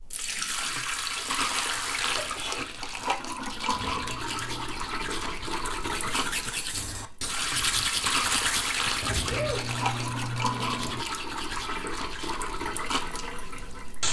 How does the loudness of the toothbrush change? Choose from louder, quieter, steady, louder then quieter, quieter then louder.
louder then quieter.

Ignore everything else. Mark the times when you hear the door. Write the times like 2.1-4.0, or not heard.
3.7-4.8, 9.0-11.1.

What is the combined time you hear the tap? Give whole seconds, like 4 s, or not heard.
14 s.